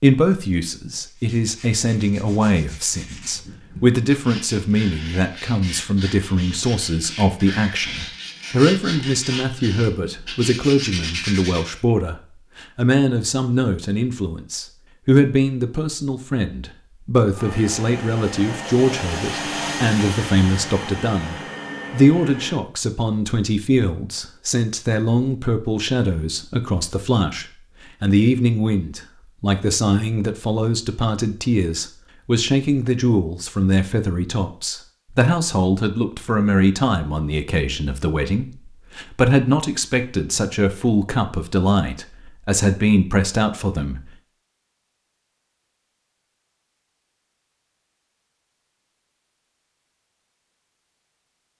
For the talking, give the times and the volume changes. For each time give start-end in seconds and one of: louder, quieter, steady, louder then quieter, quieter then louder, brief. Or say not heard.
0.0-44.1 steady.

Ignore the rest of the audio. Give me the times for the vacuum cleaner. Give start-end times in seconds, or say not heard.
17.3-22.6.